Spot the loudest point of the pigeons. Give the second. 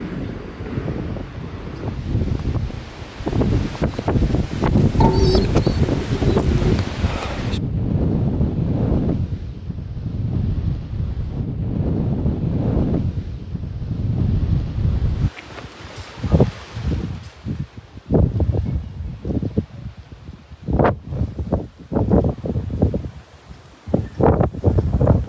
5 s.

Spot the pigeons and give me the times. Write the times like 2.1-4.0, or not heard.
5.0-6.8.